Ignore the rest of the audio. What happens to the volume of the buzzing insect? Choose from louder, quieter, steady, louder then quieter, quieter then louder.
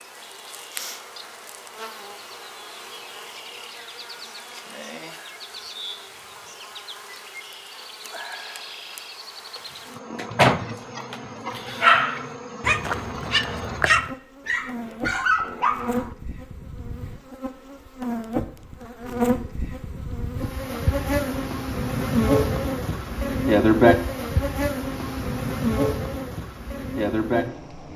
louder.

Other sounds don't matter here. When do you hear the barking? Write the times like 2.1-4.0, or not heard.
10.2-16.1.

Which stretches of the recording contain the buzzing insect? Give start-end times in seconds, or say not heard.
0.0-27.9.